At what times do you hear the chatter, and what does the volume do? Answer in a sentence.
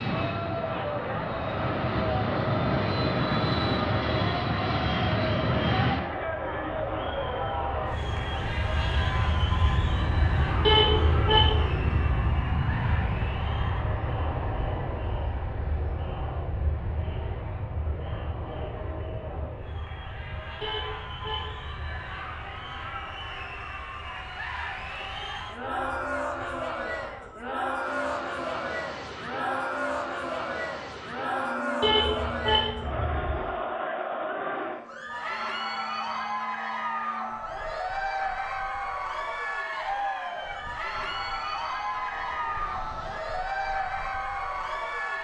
You can hear the chatter from 0.0 to 45.1 s, getting quieter then louder.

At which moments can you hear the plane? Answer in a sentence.
The plane can be heard from 0.0 to 45.1 s.